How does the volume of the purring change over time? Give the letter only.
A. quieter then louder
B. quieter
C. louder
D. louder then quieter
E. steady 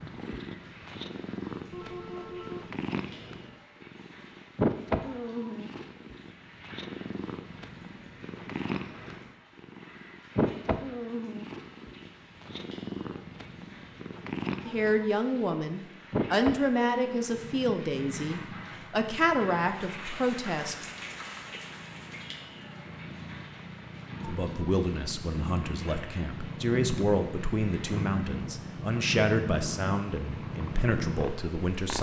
A.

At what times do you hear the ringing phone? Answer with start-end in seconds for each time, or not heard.
1.7-2.7.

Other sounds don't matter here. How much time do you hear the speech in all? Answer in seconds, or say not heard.
14 s.